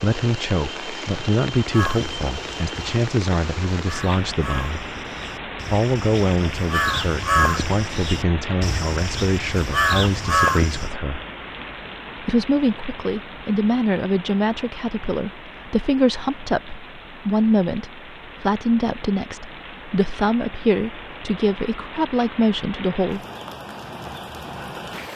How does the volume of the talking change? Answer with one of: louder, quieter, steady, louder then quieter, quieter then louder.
steady.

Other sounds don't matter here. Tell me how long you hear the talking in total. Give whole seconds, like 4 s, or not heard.
21 s.